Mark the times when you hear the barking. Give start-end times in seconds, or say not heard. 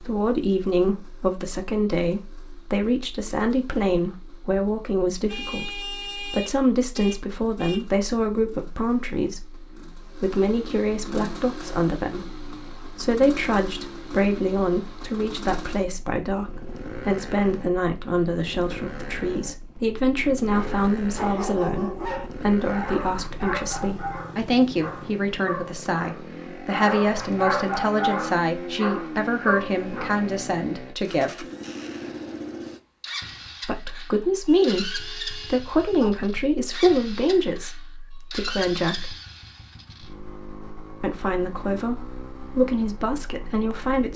20.5-30.3.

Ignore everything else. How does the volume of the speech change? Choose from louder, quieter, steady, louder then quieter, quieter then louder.
steady.